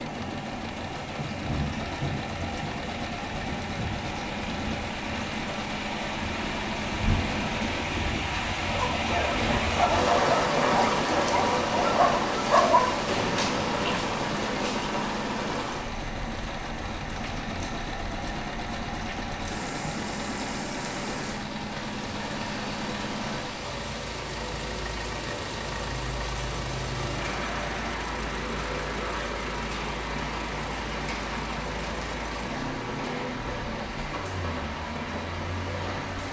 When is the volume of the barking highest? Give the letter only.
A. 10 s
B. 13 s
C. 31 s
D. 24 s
B.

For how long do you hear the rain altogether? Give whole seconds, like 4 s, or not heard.
36 s.